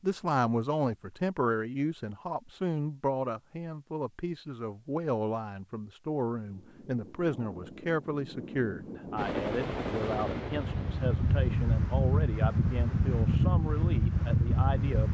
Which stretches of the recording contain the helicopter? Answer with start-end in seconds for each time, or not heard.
9.2-11.5.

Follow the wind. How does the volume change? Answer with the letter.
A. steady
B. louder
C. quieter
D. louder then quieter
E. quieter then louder
B.